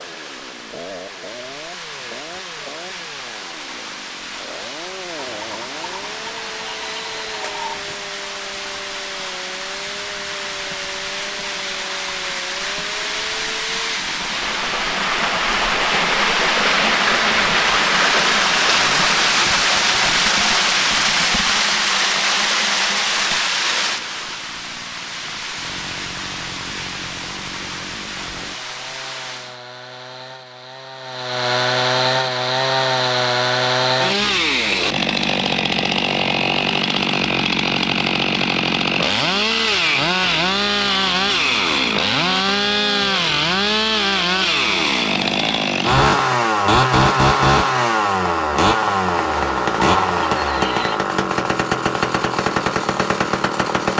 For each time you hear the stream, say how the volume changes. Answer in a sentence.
The stream can be heard from 0.0 to 29.6 s, getting louder then quieter.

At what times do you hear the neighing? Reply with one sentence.
You can hear the neighing from 5.2 to 7.8 s and from 49.1 to 51.0 s.